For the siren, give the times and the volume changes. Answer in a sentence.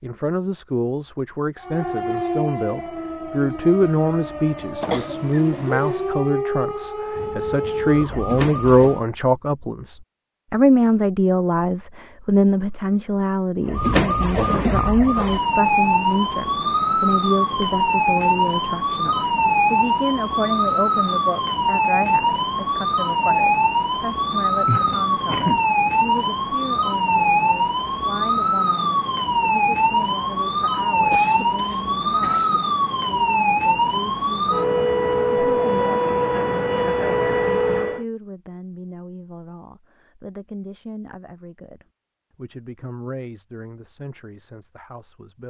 The siren can be heard from 1.6 to 9.1 s, getting quieter then louder; and from 13.7 to 38.0 s, at a steady volume.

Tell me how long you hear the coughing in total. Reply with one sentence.
You can hear the coughing for 4 seconds altogether.